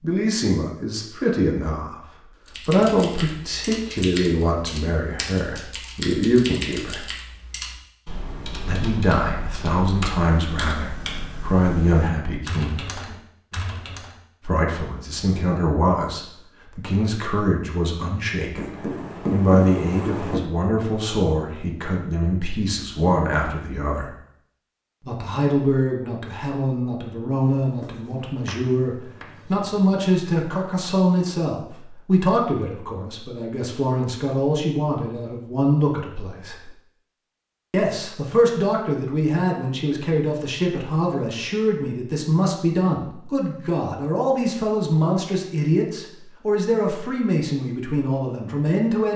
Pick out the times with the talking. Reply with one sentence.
The talking can be heard from 0.0 to 2.0 s, from 2.6 to 7.0 s, from 8.7 to 12.8 s, from 14.4 to 24.1 s, from 25.1 to 36.7 s and from 37.7 to 49.1 s.